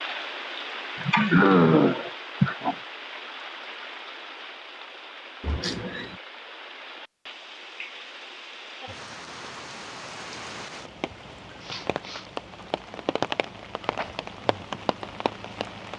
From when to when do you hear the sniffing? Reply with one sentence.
The sniffing can be heard from 1.0 to 2.8 s, from 5.4 to 6.2 s and from 11.6 to 12.3 s.